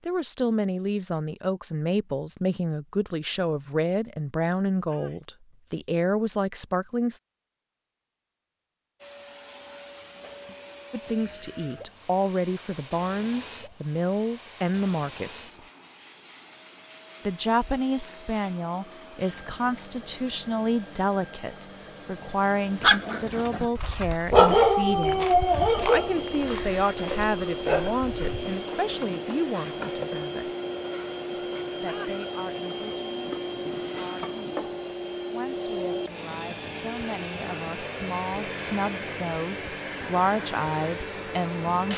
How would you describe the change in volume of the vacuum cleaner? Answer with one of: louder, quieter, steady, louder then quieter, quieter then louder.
louder.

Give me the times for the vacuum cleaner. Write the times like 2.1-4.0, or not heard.
9.0-41.9.